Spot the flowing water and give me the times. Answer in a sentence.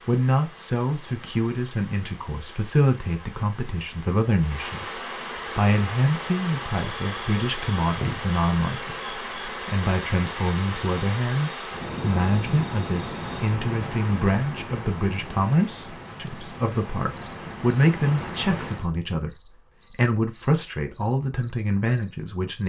The flowing water can be heard from 0.0 to 18.9 s.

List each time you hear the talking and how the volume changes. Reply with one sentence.
You can hear the talking from 0.1 to 22.6 s, at a steady volume.